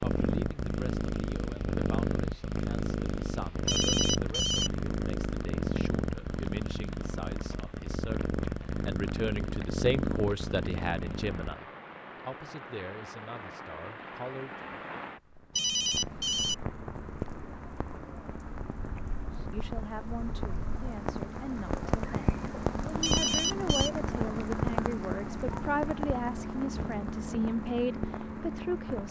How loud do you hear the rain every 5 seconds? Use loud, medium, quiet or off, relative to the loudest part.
quiet, quiet, medium, medium, loud, loud.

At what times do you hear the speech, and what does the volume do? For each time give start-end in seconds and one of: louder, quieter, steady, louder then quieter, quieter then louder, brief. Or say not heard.
0.0-14.6 louder then quieter
19.4-29.0 louder.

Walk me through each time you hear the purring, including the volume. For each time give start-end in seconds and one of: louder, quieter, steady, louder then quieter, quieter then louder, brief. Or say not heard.
0.0-11.6 steady.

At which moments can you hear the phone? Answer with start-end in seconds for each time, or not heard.
3.6-4.7, 15.6-16.6, 23.0-23.9.